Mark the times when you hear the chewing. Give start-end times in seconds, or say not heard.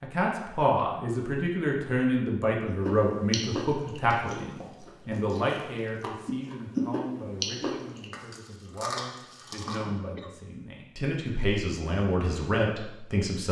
2.6-9.8.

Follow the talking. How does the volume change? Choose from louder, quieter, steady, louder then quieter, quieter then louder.
quieter then louder.